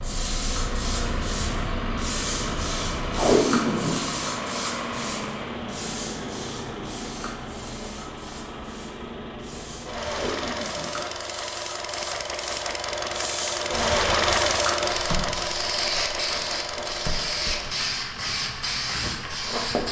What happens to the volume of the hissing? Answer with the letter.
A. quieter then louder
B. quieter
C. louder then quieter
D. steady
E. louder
A.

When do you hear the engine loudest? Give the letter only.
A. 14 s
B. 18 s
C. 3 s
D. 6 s
A.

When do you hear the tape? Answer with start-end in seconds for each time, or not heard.
3.1-4.1, 10.1-11.1.